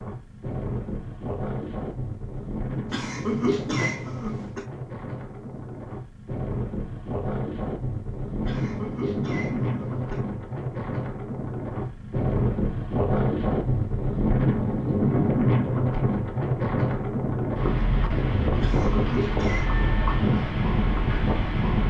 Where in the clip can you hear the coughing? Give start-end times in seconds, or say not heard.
2.9-4.7, 8.4-10.2, 18.6-19.8.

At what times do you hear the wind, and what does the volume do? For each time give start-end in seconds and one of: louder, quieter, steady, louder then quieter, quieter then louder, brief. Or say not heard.
0.0-21.8 louder.